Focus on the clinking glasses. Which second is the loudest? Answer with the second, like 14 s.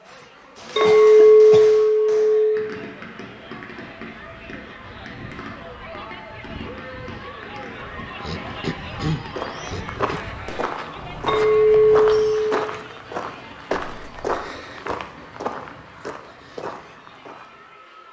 1 s.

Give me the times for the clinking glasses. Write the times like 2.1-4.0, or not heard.
0.8-2.6, 11.2-12.6.